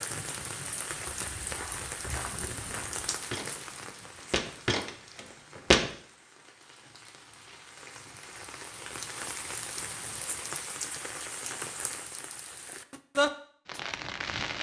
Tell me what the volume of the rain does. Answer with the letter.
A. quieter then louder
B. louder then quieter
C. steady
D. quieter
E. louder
A.